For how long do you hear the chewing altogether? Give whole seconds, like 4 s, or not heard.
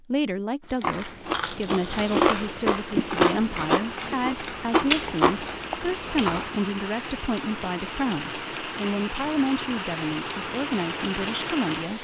6 s.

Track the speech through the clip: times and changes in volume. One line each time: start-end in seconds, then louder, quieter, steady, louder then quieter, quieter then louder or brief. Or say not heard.
0.0-11.9 steady.